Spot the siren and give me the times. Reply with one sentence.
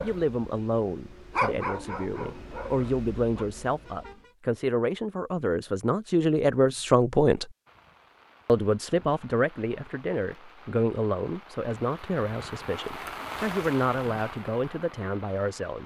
The siren can't be heard in this clip.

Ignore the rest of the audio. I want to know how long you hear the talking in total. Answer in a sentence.
You can hear the talking for 15 seconds altogether.